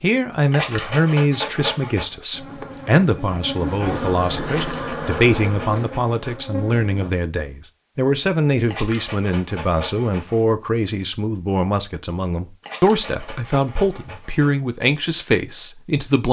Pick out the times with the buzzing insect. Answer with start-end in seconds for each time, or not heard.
2.3-7.1.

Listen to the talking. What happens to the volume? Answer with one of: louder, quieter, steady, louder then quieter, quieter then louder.
steady.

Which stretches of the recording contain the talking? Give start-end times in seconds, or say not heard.
0.0-16.2.